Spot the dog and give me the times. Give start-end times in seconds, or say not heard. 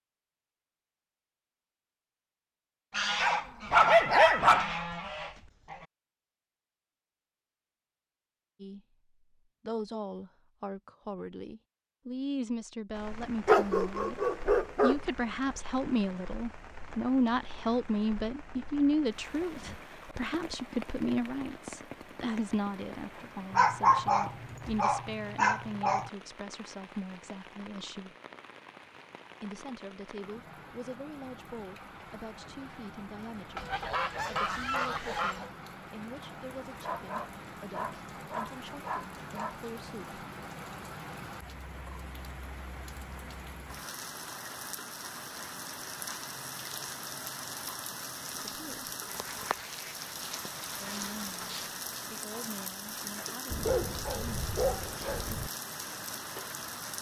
3.2-4.7, 13.4-14.9, 23.5-26.1, 36.8-39.5, 53.5-55.5.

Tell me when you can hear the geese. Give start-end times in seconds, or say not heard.
2.9-5.8, 33.5-35.5, 49.0-51.8.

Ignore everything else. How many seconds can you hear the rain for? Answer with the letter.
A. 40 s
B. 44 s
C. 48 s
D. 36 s
B.